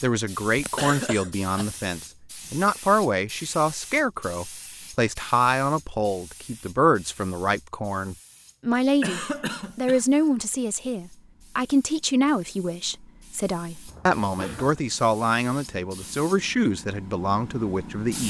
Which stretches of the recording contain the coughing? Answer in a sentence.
The coughing can be heard from 0.6 to 1.8 s, from 9.0 to 10.1 s and from 13.8 to 14.8 s.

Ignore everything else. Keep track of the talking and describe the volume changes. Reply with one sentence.
The loudness of the talking stays about the same.